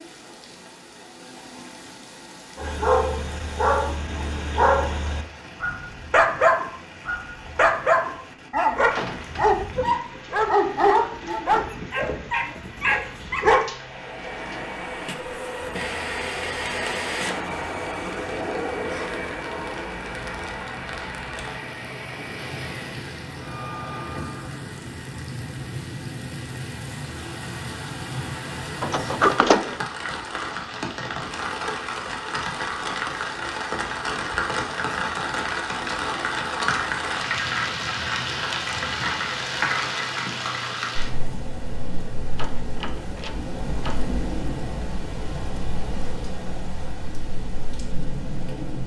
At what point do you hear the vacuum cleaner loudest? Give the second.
17 s.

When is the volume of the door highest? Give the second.
29 s.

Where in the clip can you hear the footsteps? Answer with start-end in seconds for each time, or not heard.
not heard.